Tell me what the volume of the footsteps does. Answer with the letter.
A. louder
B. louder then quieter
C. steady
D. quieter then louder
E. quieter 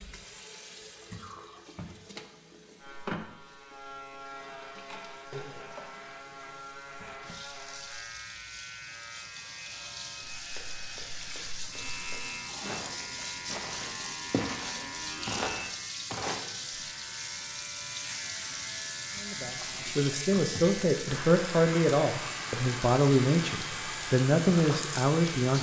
A.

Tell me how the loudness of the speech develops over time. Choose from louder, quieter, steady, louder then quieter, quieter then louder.
steady.